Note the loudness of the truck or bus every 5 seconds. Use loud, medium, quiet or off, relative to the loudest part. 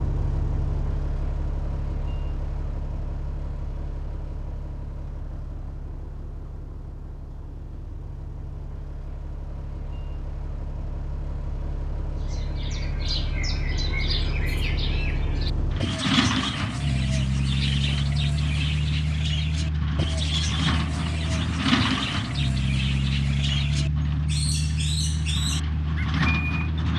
medium, quiet, medium, loud, loud, loud.